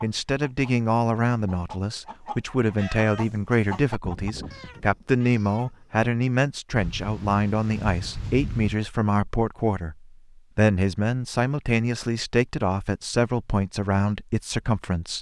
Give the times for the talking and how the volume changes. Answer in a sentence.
You can hear the talking from 0.0 to 15.1 s, at a steady volume.